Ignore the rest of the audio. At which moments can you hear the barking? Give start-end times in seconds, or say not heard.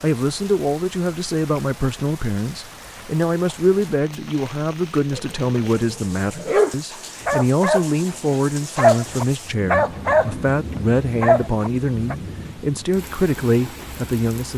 5.1-7.8, 8.8-10.3, 11.2-12.2.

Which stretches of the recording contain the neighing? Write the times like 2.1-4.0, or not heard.
not heard.